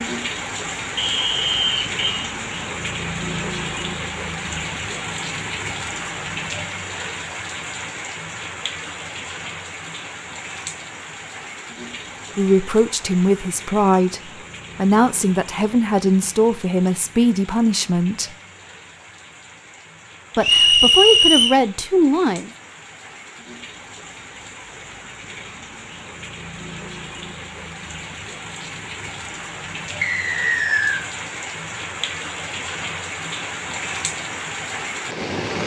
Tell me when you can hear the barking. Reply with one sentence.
The barking can't be heard in this clip.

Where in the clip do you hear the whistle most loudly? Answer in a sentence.
The loudest moment of the whistle is at 21 seconds.